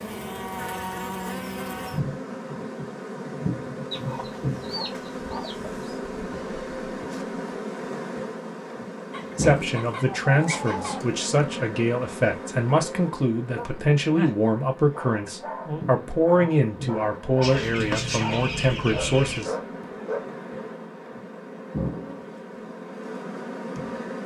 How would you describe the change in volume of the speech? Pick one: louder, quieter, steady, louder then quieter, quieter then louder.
steady.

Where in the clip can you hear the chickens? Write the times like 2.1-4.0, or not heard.
3.9-6.0, 9.1-11.2, 17.4-19.4.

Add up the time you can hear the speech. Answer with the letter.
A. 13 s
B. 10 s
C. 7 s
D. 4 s
B.